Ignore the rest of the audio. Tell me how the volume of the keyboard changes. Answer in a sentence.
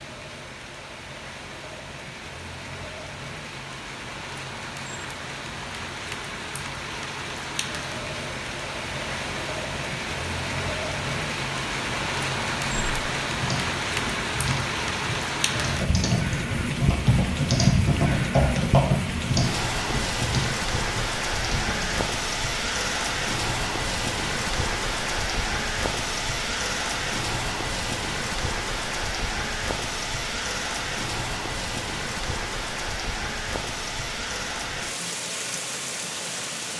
The volume of the keyboard goes up, then down.